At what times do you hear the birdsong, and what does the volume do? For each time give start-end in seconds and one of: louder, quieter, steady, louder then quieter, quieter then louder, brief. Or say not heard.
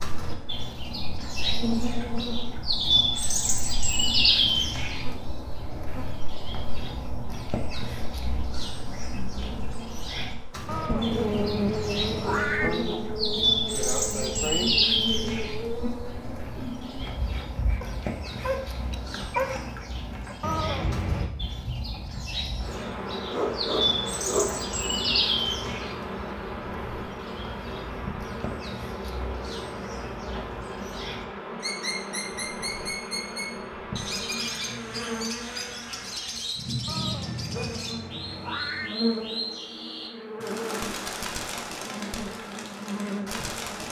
0.0-43.8 quieter.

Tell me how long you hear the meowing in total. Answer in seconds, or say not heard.
5 s.